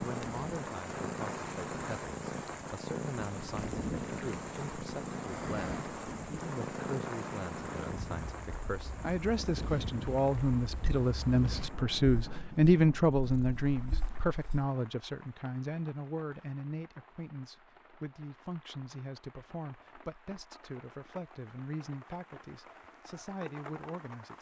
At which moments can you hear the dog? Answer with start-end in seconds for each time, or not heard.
not heard.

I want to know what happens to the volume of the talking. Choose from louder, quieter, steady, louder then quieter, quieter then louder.
louder then quieter.